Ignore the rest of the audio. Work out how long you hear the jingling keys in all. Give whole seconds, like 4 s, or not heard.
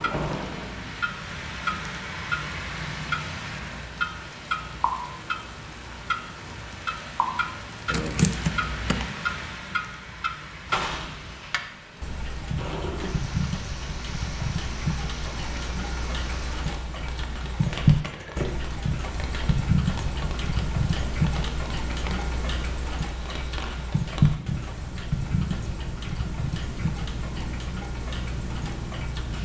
2 s.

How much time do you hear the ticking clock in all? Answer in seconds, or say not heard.
29 s.